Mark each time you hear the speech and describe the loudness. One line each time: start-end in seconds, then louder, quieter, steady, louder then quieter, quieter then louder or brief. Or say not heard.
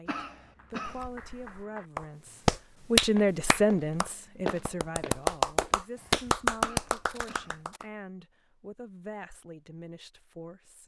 0.0-10.8 louder then quieter.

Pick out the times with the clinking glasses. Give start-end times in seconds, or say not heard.
not heard.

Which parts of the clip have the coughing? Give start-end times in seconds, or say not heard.
0.1-1.1, 6.6-7.7.